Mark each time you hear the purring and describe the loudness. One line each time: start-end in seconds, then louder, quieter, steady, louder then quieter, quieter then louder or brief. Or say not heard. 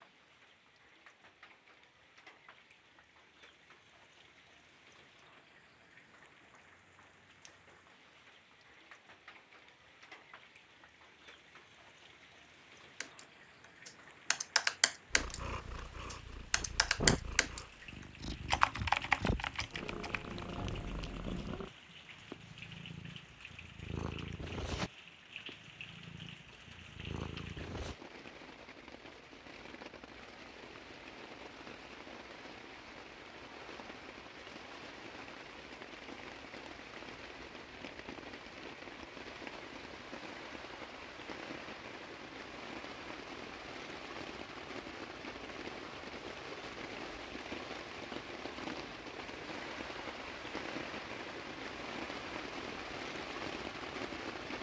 15.1-27.9 quieter.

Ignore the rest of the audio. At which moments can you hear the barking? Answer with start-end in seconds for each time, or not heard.
not heard.